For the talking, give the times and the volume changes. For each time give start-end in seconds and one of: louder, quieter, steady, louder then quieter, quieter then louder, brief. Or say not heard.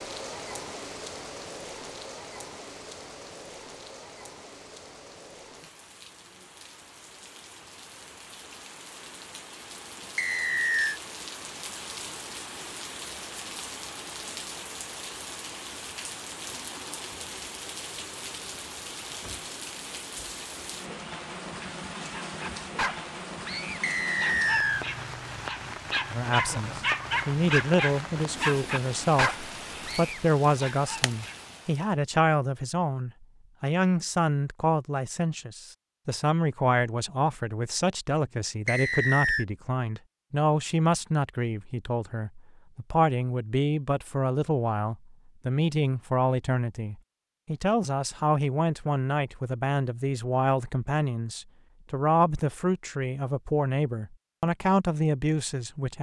26.1-55.9 steady.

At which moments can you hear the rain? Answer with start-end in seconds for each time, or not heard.
0.0-31.9.